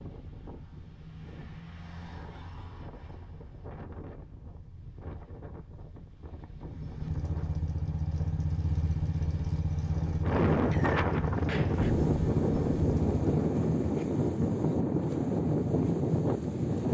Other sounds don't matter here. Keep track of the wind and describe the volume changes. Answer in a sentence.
The loudness of the wind goes up.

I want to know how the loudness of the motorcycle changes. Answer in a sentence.
The volume of the motorcycle stays about the same.